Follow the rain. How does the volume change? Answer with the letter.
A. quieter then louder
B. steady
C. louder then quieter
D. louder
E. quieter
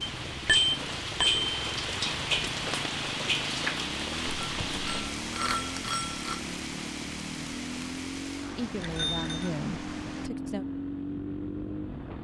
E.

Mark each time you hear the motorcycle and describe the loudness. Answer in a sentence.
You can hear the motorcycle from 0.0 to 12.1 s, getting louder.